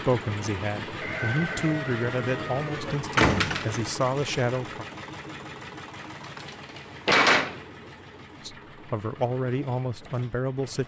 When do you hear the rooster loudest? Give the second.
1 s.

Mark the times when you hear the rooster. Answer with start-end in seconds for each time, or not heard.
1.0-3.0.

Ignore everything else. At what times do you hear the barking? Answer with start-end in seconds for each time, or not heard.
not heard.